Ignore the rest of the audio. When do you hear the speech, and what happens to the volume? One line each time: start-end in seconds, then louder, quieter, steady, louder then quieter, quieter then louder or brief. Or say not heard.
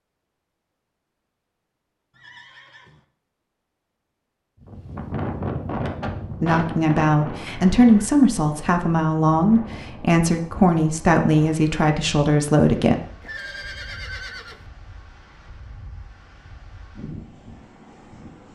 6.4-12.9 steady.